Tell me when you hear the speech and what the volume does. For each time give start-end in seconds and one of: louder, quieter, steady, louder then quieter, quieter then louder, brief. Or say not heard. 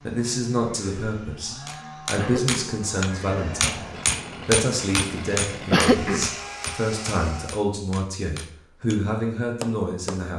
0.1-10.3 steady.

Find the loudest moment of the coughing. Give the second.
6 s.